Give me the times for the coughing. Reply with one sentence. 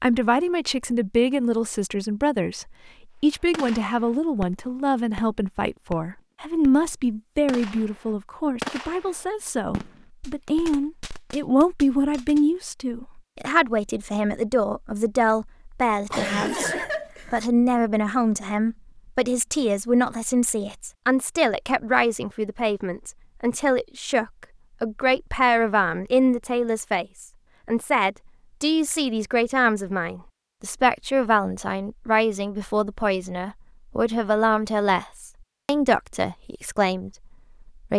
The coughing can be heard from 16.1 to 17.4 s.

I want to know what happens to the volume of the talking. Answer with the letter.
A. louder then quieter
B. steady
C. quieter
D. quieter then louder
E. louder
B.